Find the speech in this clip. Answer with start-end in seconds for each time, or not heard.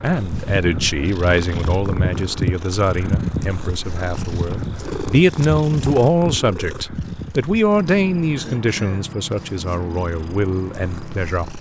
0.0-11.5.